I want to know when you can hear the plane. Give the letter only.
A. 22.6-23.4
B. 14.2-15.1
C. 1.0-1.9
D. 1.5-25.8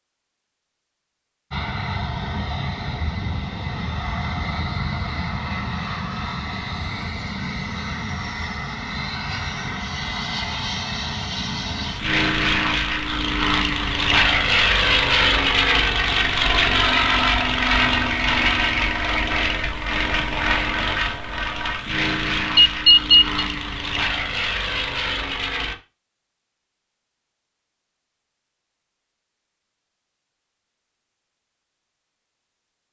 D.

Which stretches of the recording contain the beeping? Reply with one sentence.
You can hear the beeping from 22.6 to 23.4 s.